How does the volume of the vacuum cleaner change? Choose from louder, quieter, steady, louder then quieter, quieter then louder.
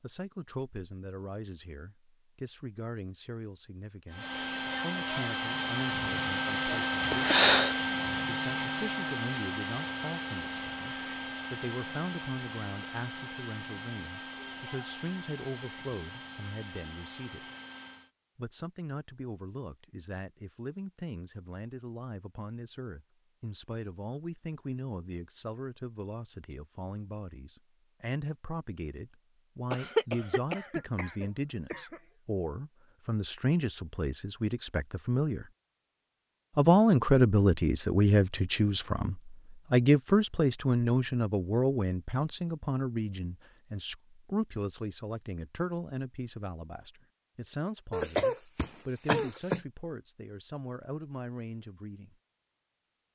quieter.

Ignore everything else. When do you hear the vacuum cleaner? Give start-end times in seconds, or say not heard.
4.1-18.1.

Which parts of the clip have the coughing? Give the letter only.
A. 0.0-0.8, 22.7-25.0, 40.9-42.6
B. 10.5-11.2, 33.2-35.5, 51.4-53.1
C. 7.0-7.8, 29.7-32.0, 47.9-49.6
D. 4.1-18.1
C.